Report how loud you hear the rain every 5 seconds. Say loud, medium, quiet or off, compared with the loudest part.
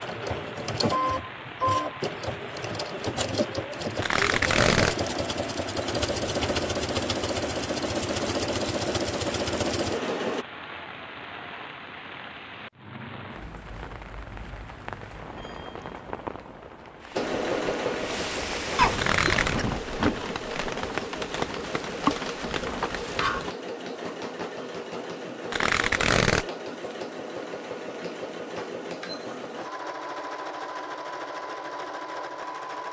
medium, medium, medium, medium, loud, off, off.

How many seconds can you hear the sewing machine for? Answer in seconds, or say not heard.
26 s.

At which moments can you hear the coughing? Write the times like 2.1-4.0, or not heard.
18.8-19.6.